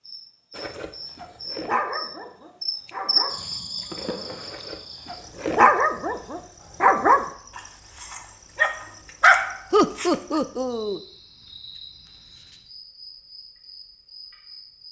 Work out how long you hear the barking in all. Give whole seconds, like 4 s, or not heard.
10 s.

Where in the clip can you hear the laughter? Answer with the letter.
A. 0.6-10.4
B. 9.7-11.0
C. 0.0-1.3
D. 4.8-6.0
B.